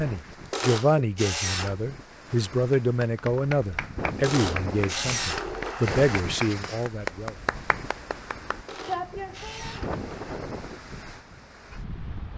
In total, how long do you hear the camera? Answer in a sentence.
You can hear the camera for 5 seconds altogether.